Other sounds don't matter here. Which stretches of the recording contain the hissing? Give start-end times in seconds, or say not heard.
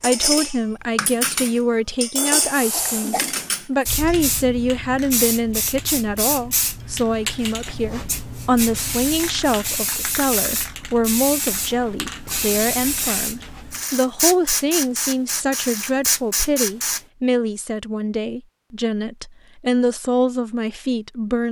2.5-17.0.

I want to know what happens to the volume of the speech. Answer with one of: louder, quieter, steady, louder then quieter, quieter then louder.
steady.